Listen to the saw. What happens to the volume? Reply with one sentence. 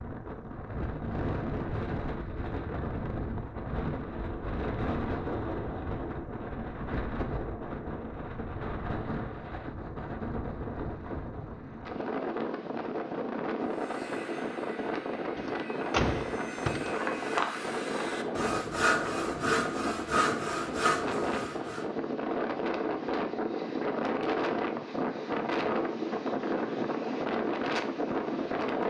The volume of the saw goes up.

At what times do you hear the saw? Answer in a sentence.
The saw can be heard from 13.7 to 21.9 s.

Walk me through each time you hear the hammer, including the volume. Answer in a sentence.
You can't hear the hammer here.